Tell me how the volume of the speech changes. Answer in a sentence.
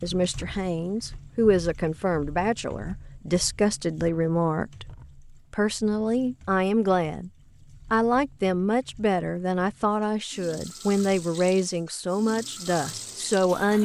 The volume of the speech stays about the same.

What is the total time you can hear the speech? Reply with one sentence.
The speech can be heard for 13 seconds in total.